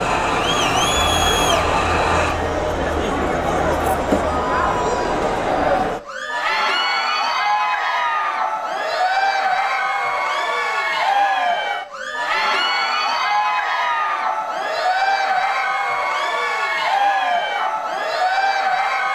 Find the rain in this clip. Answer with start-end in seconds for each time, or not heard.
not heard.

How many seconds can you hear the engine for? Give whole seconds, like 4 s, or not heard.
2 s.